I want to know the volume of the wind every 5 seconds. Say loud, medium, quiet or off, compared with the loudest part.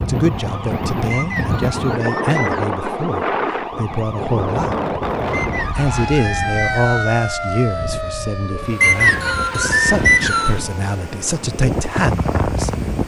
loud, medium, loud.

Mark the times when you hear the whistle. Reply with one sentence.
You can hear the whistle from 1.1 to 2.7 s, from 5.3 to 7.1 s and from 8.8 to 10.6 s.